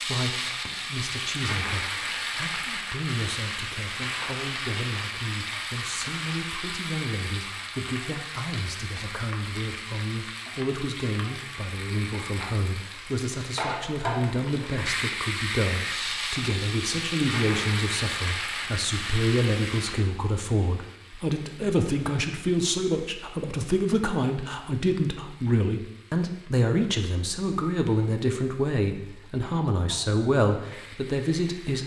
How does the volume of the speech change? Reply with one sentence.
The loudness of the speech goes up.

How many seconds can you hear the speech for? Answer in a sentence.
You can hear the speech for 32 seconds altogether.